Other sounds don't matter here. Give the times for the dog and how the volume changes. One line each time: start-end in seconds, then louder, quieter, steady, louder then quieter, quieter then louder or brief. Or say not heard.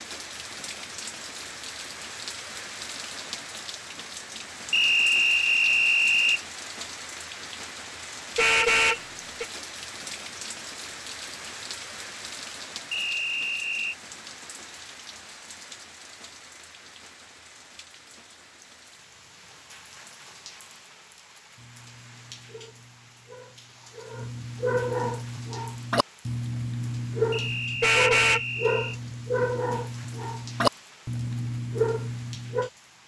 21.6-32.7 louder.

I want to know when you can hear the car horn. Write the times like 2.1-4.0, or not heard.
8.3-9.4, 27.8-28.4.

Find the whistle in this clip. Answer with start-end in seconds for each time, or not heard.
4.7-6.4, 12.9-13.9, 27.3-29.0.